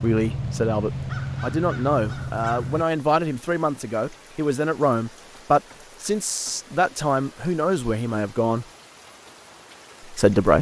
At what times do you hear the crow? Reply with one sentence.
You can hear the crow from 0.0 to 2.9 s.